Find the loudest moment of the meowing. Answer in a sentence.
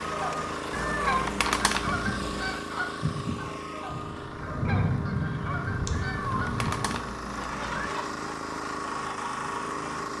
The volume of the meowing peaks at 2 seconds.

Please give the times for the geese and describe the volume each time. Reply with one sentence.
The geese can be heard from 0.0 to 10.1 s, getting quieter.